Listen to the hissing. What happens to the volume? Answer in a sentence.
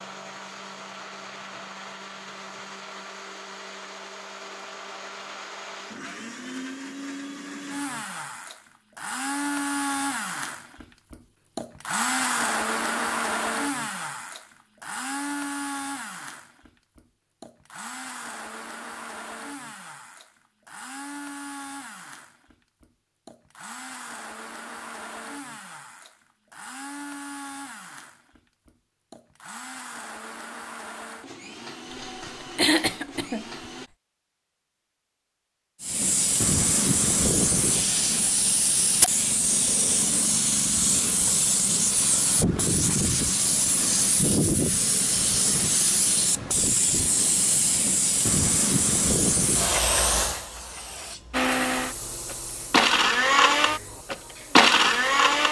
The loudness of the hissing goes down.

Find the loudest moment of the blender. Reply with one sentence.
The volume of the blender peaks at 55 seconds.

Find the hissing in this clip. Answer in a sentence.
The hissing can be heard from 35.8 to 55.4 s.